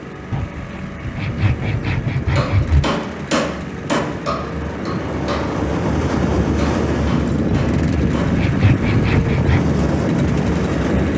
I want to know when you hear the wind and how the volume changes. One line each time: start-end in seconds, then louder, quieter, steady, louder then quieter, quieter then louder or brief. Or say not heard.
0.0-11.1 louder.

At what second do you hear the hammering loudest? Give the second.
3 s.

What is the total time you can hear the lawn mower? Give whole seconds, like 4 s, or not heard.
11 s.